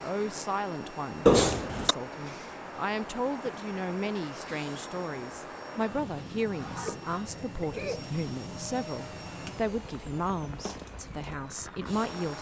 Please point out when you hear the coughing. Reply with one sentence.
The coughing can be heard from 1.2 to 1.9 s and from 6.7 to 8.1 s.